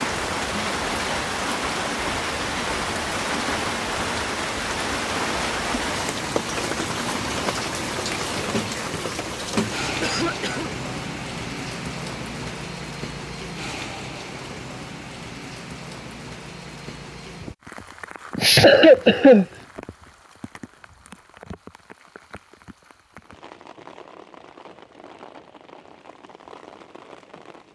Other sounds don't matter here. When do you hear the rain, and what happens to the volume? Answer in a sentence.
You can hear the rain from 0.0 to 27.6 s, getting quieter.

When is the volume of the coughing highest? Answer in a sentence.
The loudest moment of the coughing is at 19 seconds.